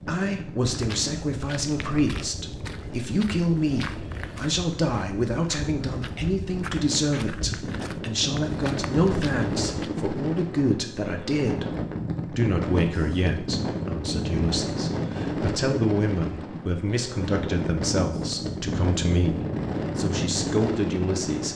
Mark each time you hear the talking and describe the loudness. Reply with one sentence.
You can hear the talking from 0.1 to 21.5 s, at a steady volume.